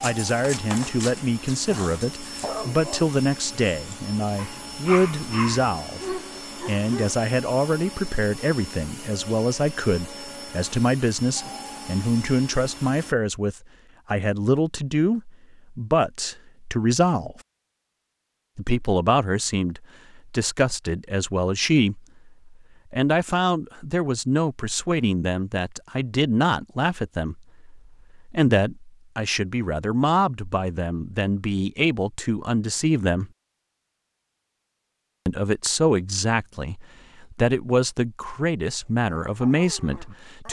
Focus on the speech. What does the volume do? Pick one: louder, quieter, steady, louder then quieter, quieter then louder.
steady.